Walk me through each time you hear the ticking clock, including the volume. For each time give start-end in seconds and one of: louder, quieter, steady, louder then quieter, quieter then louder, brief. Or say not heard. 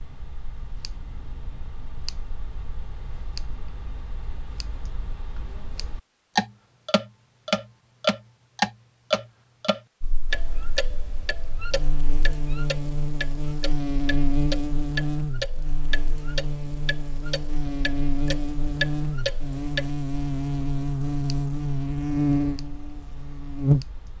0.0-24.1 louder then quieter.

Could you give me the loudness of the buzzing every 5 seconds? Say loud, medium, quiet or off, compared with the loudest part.
off, off, medium, medium, loud.